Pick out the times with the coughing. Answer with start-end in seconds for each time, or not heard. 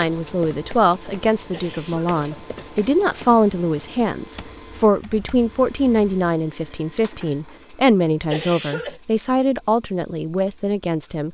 1.5-2.5, 8.3-9.0.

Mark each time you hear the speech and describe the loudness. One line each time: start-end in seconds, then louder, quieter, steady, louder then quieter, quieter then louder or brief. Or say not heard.
0.0-11.2 steady.